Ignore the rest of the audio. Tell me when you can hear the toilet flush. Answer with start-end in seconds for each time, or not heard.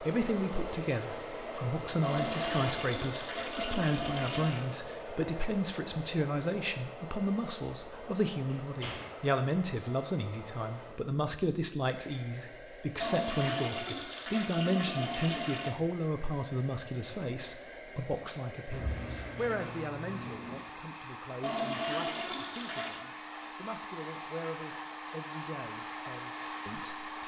2.0-4.7, 13.0-15.8, 21.4-23.1.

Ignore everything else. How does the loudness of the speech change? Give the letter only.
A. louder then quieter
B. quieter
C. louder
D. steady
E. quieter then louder
B.